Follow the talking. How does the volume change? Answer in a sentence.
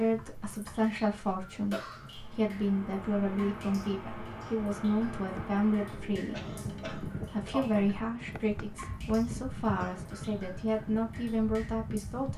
The loudness of the talking stays about the same.